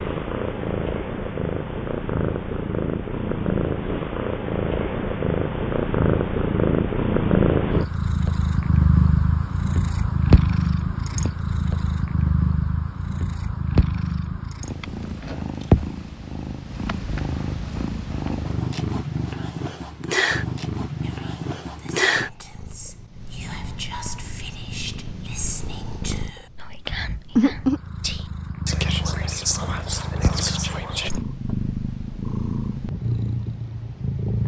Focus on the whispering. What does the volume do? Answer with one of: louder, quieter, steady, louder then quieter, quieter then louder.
louder.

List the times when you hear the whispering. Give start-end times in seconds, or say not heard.
21.0-31.1.